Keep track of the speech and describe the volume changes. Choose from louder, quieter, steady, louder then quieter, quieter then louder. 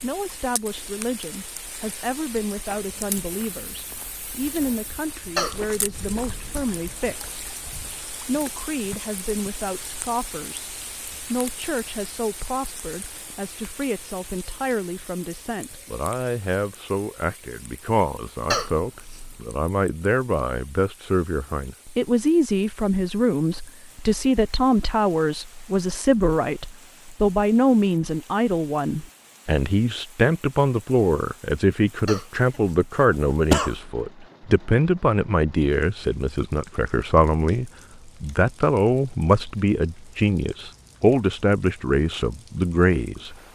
louder.